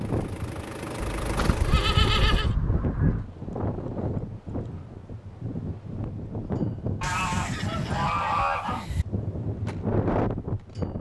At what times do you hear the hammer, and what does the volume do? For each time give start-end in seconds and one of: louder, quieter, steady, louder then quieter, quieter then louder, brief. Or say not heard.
not heard.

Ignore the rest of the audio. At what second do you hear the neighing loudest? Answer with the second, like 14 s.
2 s.